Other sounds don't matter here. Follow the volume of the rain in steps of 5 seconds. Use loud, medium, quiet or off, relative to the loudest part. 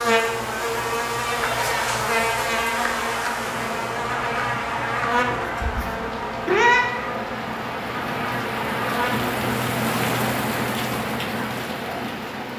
medium, loud, loud.